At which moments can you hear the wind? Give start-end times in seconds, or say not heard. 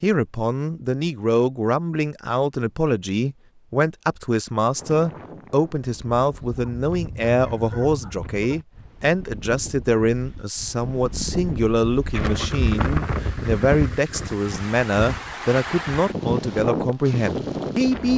4.8-18.1.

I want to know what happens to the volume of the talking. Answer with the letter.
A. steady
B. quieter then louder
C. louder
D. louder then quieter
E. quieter
A.